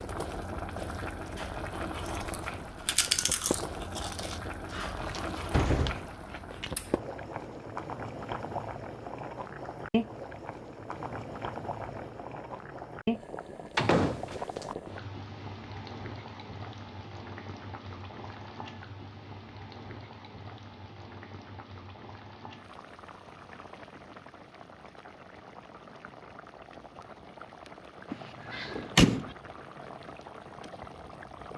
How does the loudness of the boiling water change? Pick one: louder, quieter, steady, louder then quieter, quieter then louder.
quieter.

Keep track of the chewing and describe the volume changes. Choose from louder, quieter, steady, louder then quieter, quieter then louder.
quieter.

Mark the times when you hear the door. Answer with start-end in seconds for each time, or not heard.
4.7-6.0, 13.8-14.7, 28.1-29.3.